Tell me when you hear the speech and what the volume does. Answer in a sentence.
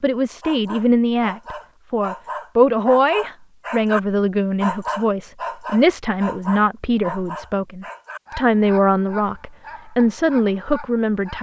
You can hear the speech from 0.0 to 11.3 s, at a steady volume.